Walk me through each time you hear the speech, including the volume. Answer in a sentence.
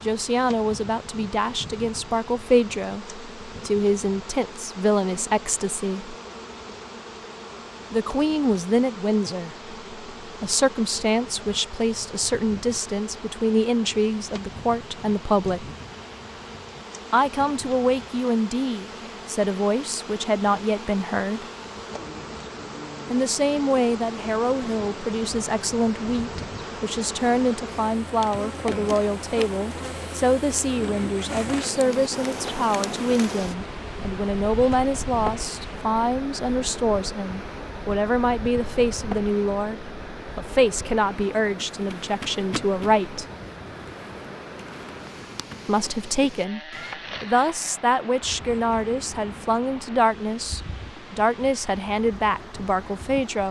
You can hear the speech from 0.0 to 6.2 s, at a steady volume; from 7.9 to 15.7 s, at a steady volume; from 17.1 to 21.4 s, at a steady volume; from 23.1 to 43.2 s, at a steady volume; briefly from 45.6 to 46.6 s; and from 47.2 to 53.4 s, at a steady volume.